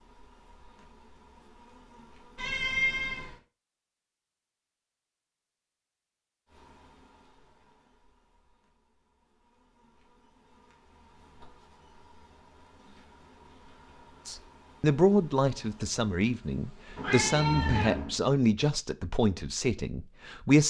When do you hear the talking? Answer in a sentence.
The talking can be heard from 14.2 to 20.6 s.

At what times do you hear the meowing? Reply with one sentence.
You can hear the meowing from 2.4 to 3.4 s and from 16.9 to 18.1 s.